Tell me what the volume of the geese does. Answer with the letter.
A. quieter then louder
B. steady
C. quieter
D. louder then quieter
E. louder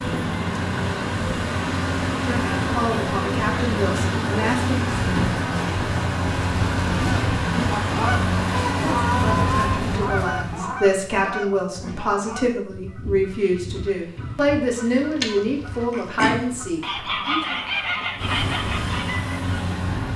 A.